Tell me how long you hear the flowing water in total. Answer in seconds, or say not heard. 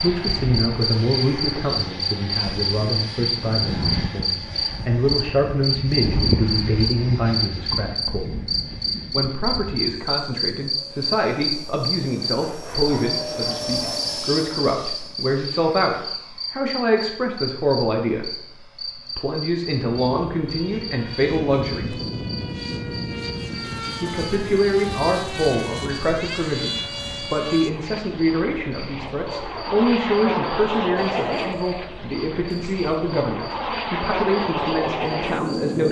not heard.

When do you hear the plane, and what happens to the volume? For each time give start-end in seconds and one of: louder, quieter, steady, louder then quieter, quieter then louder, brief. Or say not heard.
0.0-35.8 quieter then louder.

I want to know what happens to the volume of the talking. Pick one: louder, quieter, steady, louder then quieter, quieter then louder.
steady.